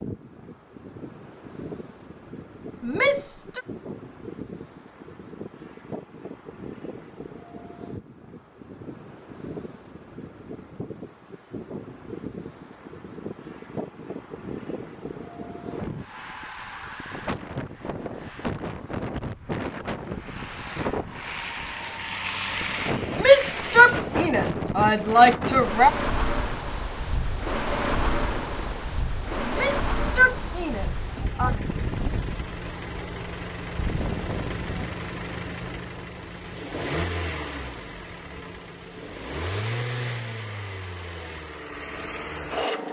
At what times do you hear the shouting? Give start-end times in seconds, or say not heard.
2.8-3.6, 23.1-25.9, 29.4-31.5.